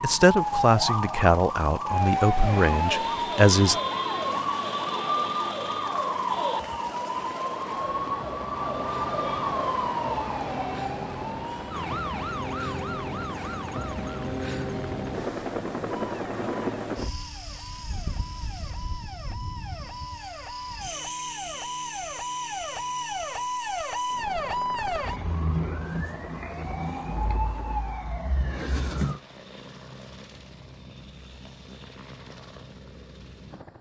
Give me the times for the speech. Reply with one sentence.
You can hear the speech from 0.0 to 3.8 s.